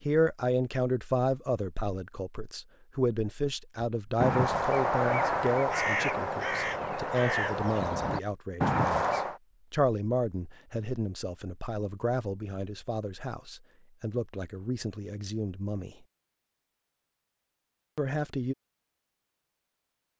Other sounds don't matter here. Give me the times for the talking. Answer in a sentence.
You can hear the talking from 0.0 to 15.9 s and from 17.9 to 18.6 s.